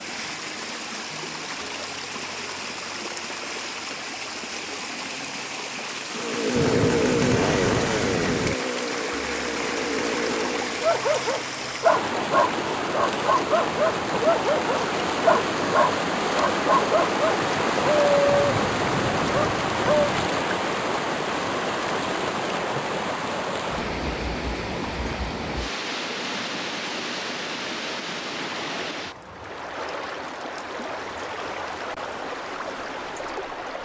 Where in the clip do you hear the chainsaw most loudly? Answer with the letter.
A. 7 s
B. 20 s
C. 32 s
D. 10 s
A.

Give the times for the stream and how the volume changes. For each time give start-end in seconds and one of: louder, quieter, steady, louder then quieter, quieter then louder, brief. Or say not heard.
0.0-33.8 louder then quieter.